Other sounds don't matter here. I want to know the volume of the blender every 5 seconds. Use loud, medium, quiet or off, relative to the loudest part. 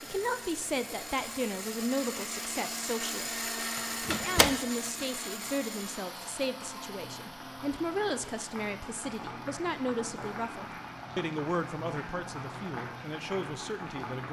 loud, medium, quiet.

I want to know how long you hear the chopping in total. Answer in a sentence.
You can't hear the chopping here.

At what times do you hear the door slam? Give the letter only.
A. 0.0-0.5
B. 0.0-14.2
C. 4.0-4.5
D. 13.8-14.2
C.